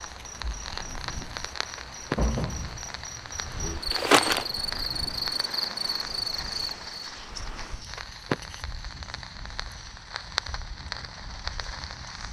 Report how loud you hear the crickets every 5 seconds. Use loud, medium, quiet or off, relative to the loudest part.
loud, loud, off.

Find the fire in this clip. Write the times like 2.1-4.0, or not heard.
0.0-12.2.